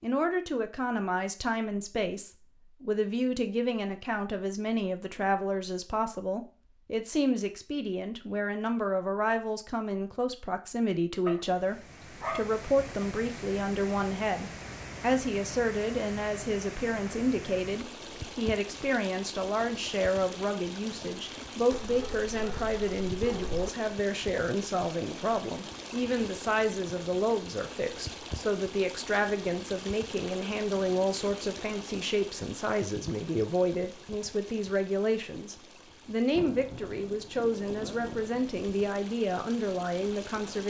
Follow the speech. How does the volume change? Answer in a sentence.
The volume of the speech stays about the same.